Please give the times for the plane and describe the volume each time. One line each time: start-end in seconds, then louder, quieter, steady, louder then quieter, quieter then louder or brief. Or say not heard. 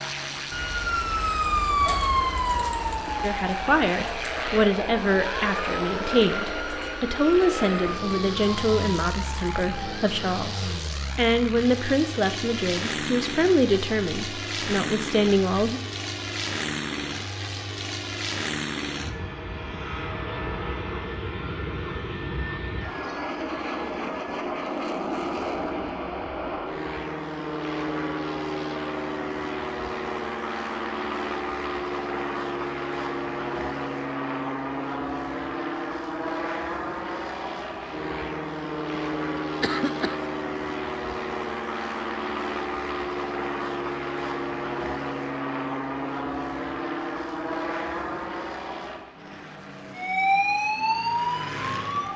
0.0-52.1 steady.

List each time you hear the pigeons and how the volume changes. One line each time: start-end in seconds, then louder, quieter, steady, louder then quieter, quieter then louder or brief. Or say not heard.
not heard.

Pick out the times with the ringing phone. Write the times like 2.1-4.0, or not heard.
not heard.